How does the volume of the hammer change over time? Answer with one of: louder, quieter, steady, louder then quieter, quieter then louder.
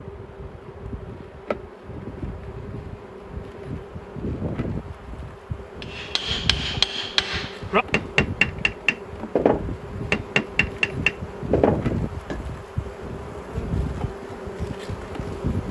steady.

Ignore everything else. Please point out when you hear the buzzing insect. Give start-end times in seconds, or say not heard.
0.0-15.6.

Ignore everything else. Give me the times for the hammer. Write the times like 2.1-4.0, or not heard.
5.8-12.4.